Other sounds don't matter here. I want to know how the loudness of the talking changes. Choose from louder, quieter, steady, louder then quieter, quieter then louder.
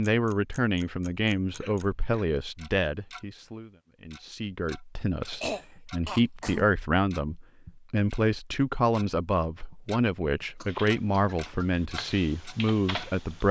quieter then louder.